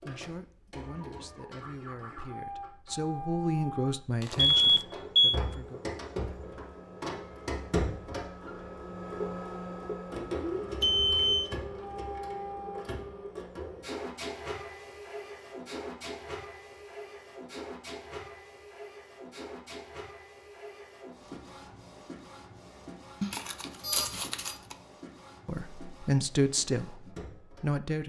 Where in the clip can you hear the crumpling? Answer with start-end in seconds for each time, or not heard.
4.2-4.8, 23.2-24.8.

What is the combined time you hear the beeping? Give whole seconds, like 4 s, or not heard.
2 s.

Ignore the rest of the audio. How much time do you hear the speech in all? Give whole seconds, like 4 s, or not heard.
8 s.